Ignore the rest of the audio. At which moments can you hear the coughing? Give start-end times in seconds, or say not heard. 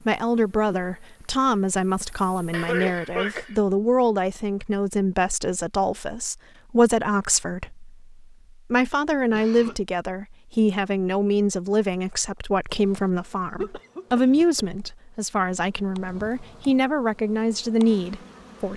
2.5-3.5, 9.3-9.8, 13.6-14.7.